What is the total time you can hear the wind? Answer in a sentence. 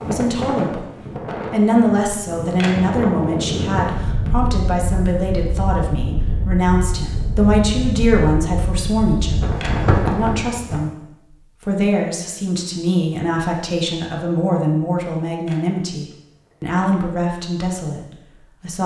The wind can be heard for 11 seconds in total.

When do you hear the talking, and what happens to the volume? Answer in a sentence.
You can hear the talking from 0.0 to 18.8 s, at a steady volume.